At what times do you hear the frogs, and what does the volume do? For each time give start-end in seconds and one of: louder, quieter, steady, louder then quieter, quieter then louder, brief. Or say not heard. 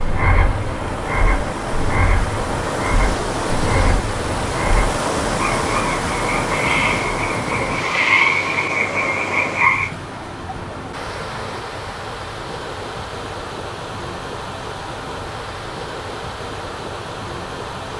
0.0-9.9 louder.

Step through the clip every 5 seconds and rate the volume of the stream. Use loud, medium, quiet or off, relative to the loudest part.
loud, loud, medium, medium.